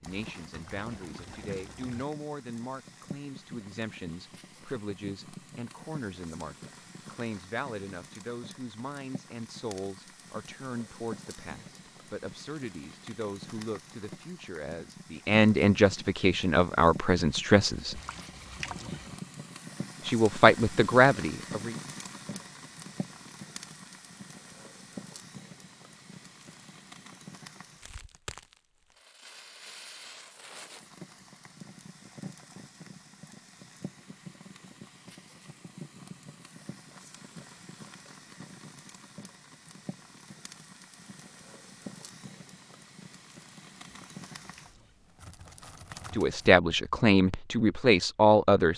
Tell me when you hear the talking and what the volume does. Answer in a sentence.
The talking can be heard from 0.0 to 18.0 s, getting louder; briefly from 20.1 to 21.8 s; and briefly from 46.1 to 48.7 s.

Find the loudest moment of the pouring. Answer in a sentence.
The loudest moment of the pouring is at 19 seconds.